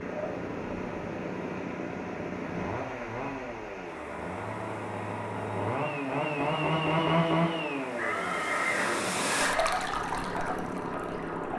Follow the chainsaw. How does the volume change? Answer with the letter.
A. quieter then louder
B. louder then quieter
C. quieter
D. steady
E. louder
B.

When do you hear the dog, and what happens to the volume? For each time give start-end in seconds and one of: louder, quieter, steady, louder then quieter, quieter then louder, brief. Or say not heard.
not heard.